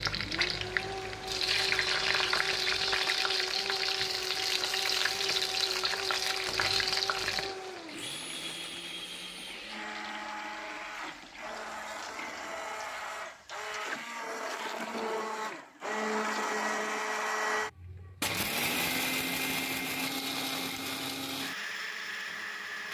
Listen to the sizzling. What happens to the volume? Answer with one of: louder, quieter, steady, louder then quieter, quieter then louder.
quieter.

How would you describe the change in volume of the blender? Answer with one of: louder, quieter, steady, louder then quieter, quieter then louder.
louder.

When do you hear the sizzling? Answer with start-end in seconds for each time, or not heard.
0.0-13.8.